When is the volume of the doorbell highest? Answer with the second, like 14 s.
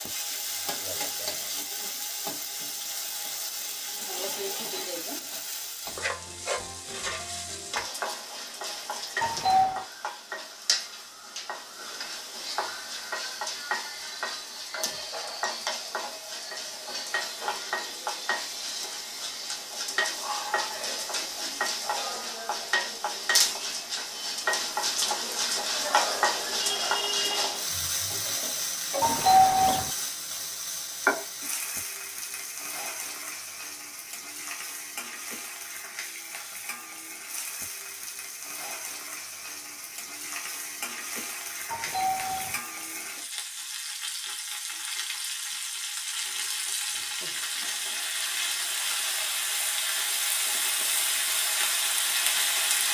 29 s.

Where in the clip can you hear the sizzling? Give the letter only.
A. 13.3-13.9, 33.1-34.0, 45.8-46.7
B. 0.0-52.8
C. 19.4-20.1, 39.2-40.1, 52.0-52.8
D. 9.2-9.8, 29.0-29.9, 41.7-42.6
B.